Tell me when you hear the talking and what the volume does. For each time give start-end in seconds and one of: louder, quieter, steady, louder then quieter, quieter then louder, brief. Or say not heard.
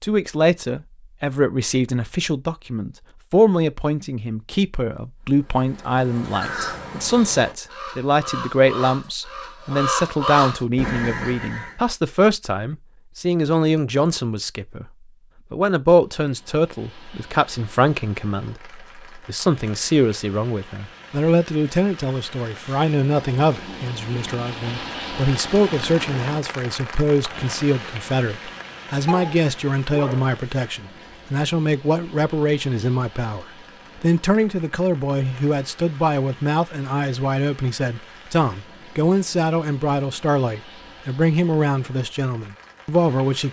0.0-14.8 steady
15.5-43.4 steady.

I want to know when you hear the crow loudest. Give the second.
10 s.